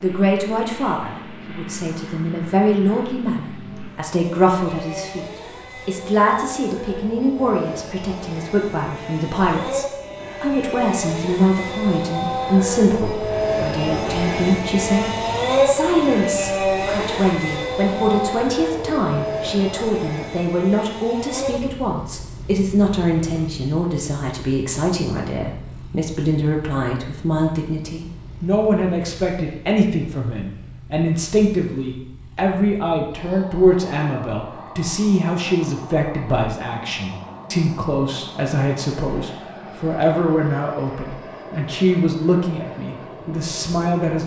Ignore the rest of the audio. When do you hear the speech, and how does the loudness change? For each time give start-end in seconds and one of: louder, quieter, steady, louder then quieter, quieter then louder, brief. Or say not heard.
0.0-44.2 steady.